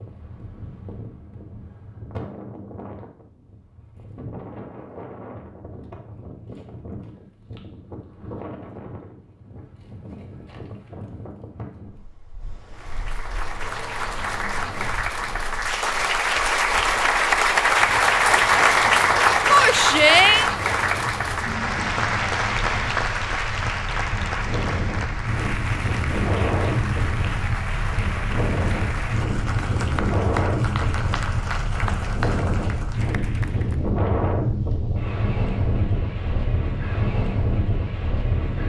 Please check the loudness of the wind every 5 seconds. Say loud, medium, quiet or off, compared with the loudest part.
quiet, quiet, quiet, quiet, medium, loud, loud, loud.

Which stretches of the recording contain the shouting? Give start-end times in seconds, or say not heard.
19.5-20.4.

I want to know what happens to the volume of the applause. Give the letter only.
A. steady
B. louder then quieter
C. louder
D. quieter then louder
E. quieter
B.